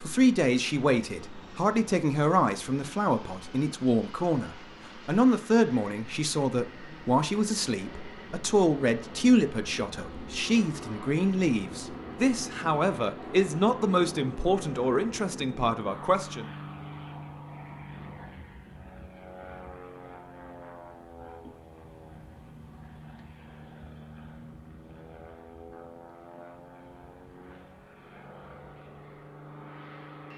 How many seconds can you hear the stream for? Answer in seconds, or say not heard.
not heard.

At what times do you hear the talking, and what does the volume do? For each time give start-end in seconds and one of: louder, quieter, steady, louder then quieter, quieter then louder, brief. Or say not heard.
0.0-16.4 steady.